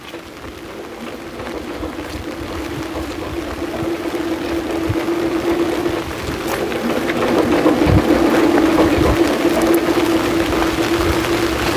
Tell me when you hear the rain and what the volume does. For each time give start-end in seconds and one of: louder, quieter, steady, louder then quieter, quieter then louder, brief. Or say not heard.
0.0-11.7 louder.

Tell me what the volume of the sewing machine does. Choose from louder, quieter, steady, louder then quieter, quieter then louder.
louder.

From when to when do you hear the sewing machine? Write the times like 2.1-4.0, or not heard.
0.0-11.7.